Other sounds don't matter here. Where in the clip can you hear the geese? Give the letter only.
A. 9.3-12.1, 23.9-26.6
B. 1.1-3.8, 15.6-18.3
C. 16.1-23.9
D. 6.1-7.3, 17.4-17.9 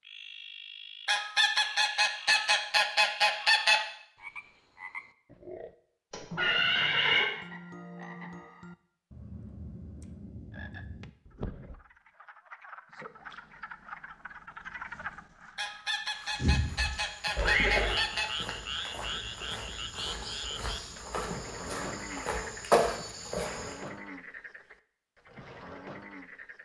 B.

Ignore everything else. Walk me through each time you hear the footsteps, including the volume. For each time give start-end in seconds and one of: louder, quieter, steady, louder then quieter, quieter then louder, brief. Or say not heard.
16.1-23.9 louder.